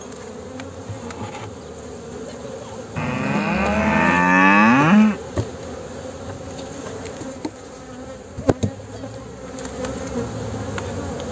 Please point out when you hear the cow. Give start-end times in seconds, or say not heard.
3.0-5.2.